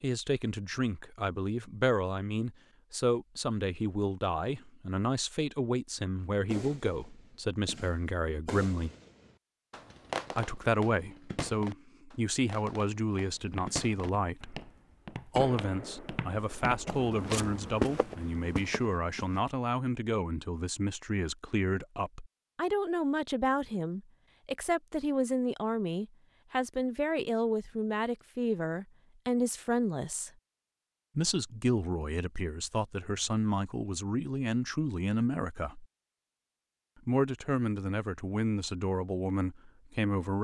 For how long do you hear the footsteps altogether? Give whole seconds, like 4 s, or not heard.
6 s.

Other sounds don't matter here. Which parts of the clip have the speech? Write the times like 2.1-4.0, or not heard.
0.0-8.9, 10.3-14.6, 15.2-30.3, 31.1-35.9, 37.0-40.3.